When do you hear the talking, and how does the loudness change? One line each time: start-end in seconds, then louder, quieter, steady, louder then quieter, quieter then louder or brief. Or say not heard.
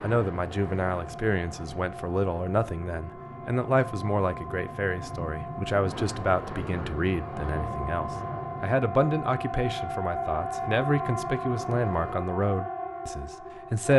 0.0-13.9 steady.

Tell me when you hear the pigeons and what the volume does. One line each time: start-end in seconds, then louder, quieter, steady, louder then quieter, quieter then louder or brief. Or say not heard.
not heard.